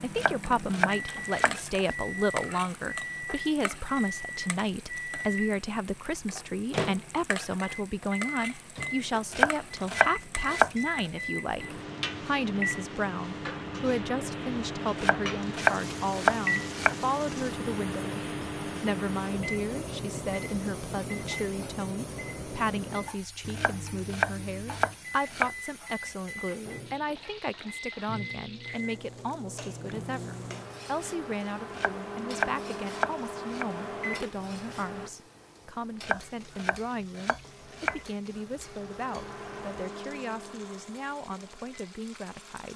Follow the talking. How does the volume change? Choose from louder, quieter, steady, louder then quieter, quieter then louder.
quieter.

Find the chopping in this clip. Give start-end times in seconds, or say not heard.
0.1-1.6, 9.3-10.7, 14.9-16.9, 23.6-25.5, 31.8-33.6, 36.0-38.0.